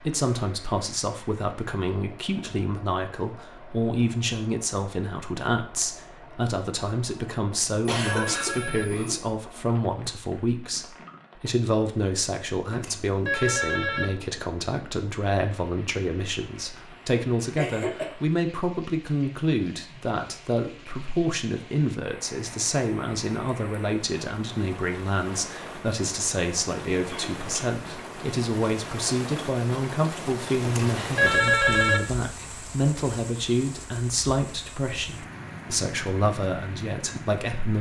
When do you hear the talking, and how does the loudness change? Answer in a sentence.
You can hear the talking from 0.1 to 37.7 s, at a steady volume.